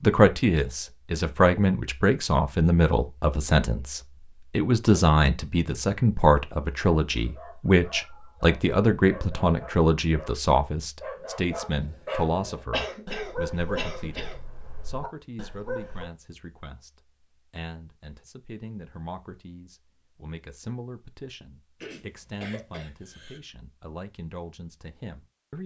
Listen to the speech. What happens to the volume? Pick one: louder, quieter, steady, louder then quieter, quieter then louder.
quieter.